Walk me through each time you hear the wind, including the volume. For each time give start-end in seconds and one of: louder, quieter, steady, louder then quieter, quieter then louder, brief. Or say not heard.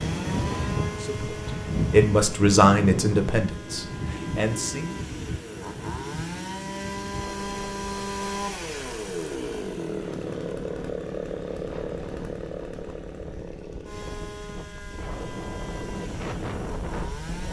0.0-17.4 quieter then louder.